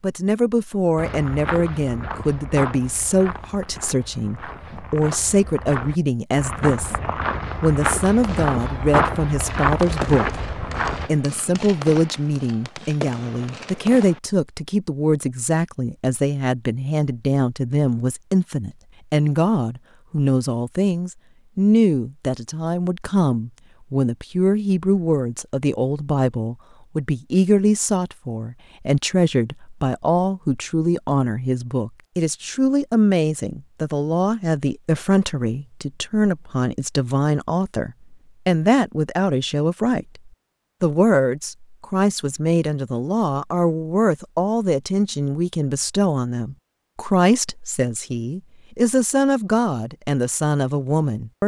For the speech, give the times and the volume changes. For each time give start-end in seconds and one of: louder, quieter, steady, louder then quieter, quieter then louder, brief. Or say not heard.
0.0-51.4 steady.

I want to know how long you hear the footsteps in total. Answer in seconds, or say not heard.
10 s.